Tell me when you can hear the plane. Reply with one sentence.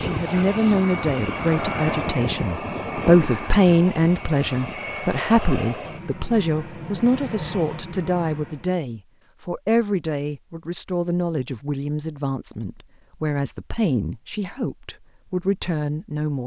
You can hear the plane from 0.0 to 8.8 s.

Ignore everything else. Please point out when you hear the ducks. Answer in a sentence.
The ducks can't be heard in this clip.